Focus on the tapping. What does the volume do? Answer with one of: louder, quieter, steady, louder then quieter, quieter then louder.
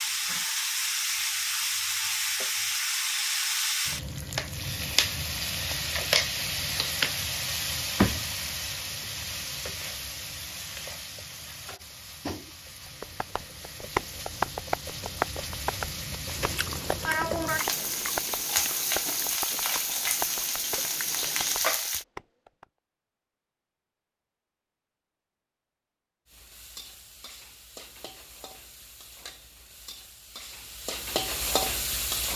louder then quieter.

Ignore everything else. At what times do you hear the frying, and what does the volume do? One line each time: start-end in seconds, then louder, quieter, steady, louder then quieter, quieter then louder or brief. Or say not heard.
0.0-22.1 quieter then louder
26.2-32.3 louder.